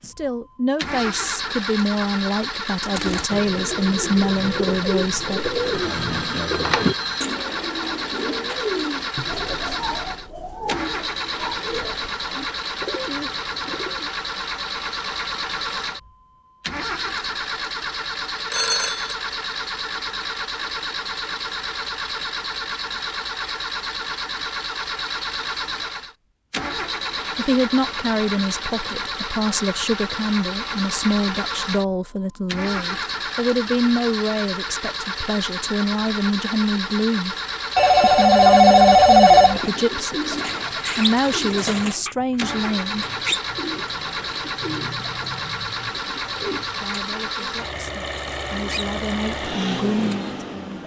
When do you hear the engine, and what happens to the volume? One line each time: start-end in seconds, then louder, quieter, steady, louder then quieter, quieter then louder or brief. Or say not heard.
0.0-50.8 steady.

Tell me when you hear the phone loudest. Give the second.
39 s.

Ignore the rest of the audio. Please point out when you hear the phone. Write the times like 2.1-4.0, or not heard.
5.9-7.2, 18.5-19.1, 37.8-39.6.